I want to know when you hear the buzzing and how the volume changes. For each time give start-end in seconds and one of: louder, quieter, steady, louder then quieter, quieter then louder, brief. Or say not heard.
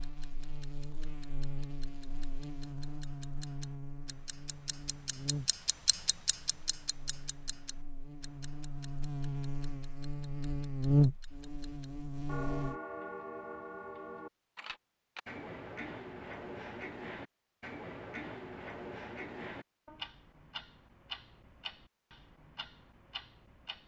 0.0-12.8 louder.